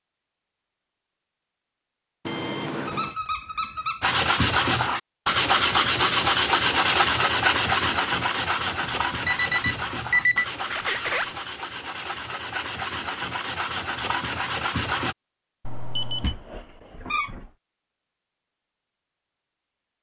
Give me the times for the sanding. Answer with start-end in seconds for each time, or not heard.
4.0-15.2.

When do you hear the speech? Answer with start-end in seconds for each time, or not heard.
not heard.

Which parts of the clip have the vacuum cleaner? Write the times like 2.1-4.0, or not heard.
not heard.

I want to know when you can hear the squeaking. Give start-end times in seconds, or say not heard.
2.9-4.1, 10.7-11.3, 16.2-17.5.